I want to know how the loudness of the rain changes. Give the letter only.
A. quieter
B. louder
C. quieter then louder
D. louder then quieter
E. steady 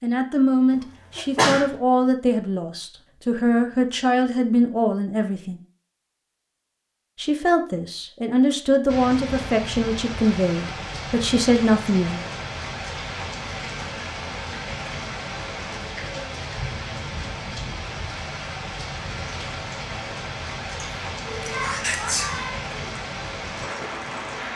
E.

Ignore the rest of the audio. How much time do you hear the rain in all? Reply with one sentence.
You can hear the rain for 16 seconds altogether.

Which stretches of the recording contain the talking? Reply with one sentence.
The talking can be heard from 0.0 to 5.6 s and from 7.2 to 12.2 s.